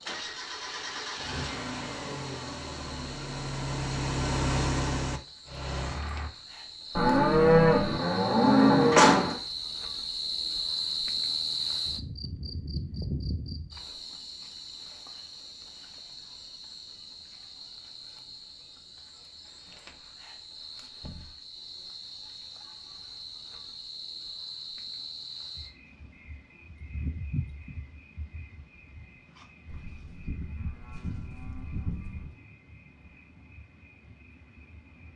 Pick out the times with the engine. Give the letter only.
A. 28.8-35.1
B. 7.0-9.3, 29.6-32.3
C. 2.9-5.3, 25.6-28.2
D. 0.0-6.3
D.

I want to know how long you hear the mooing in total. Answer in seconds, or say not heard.
5 s.